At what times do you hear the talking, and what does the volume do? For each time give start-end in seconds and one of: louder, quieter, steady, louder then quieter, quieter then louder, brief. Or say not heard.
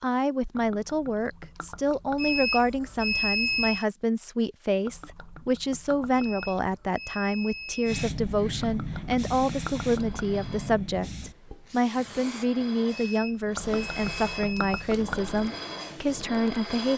0.0-16.9 steady.